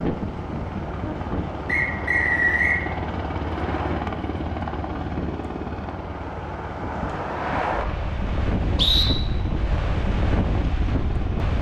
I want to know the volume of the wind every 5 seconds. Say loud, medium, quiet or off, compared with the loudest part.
medium, loud, loud.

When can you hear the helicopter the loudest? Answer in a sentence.
The loudest moment of the helicopter is at 4 seconds.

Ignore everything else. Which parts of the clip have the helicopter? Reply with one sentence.
The helicopter can be heard from 0.0 to 11.5 s.